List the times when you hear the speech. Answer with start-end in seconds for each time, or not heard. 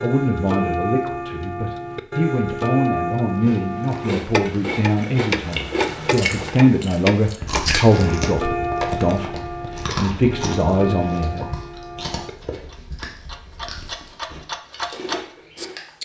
0.0-11.7.